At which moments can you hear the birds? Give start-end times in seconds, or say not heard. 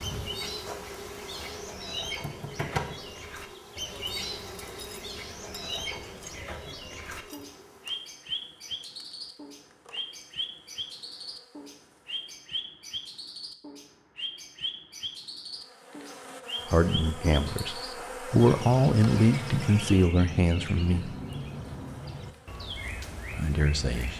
0.0-24.1.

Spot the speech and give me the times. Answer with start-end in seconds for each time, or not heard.
16.6-21.1, 23.3-24.1.